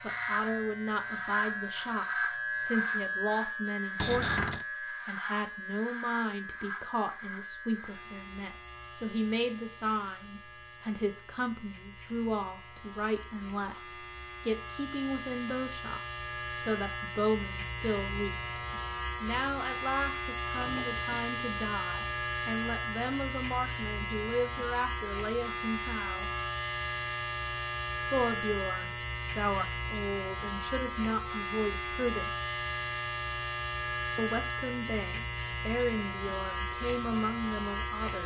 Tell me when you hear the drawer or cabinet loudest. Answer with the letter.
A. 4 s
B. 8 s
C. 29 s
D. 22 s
A.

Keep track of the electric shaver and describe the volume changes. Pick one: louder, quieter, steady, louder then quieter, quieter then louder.
quieter then louder.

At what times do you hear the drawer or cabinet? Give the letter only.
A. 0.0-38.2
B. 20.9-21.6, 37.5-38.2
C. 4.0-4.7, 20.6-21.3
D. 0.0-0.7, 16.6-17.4
C.